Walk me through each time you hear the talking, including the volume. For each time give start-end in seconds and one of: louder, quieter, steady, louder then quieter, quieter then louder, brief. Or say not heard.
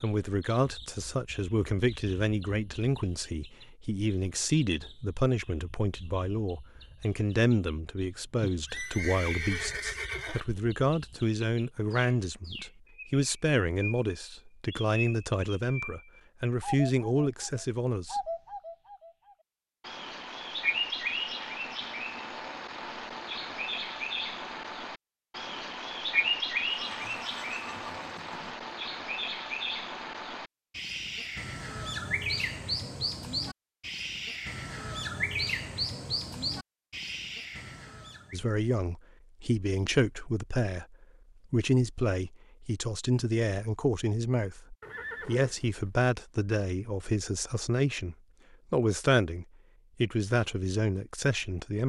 0.0-18.3 steady
38.3-51.8 steady.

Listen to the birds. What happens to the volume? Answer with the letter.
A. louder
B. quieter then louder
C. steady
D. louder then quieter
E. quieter
A.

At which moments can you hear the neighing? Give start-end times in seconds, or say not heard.
8.4-10.4, 26.7-28.6, 44.8-45.9.